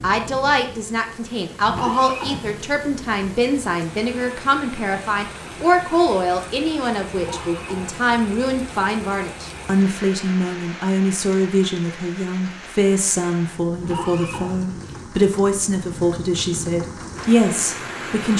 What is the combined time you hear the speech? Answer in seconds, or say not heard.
18 s.